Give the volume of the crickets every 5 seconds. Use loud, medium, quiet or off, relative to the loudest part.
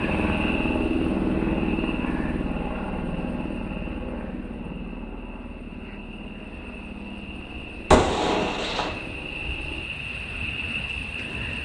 medium, medium, loud.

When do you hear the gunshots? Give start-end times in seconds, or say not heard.
7.9-8.9.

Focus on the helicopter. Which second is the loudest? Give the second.
1 s.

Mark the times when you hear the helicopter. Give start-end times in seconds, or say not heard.
0.0-9.8.